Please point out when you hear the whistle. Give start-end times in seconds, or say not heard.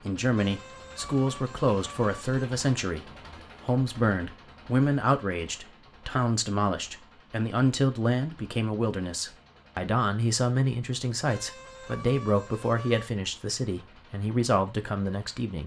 not heard.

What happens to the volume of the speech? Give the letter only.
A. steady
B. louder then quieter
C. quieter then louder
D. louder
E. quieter
A.